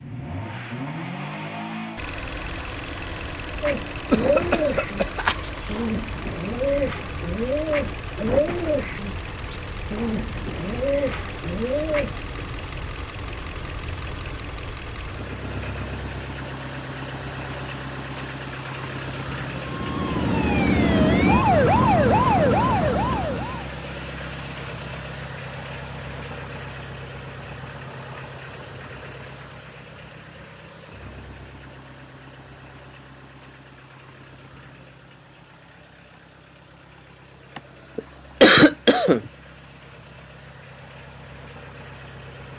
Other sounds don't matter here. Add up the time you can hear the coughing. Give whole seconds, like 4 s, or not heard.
3 s.